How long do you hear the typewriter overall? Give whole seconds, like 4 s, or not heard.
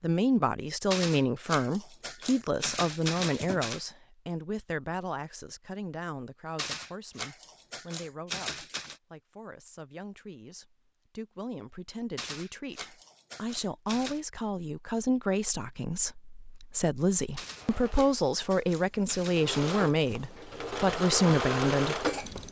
10 s.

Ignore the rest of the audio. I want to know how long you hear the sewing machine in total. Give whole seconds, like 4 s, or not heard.
5 s.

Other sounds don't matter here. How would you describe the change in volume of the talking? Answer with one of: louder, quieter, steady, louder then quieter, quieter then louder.
quieter then louder.